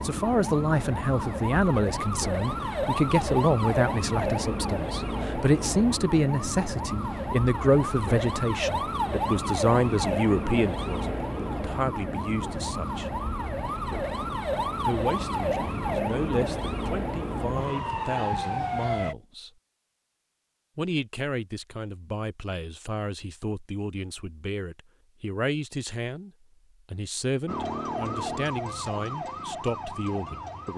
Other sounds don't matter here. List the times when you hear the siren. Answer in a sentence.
You can hear the siren from 0.0 to 19.1 s and from 27.4 to 30.7 s.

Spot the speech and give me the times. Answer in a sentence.
The speech can be heard from 0.0 to 13.1 s, from 14.8 to 19.5 s, from 20.8 to 26.3 s and from 26.9 to 30.7 s.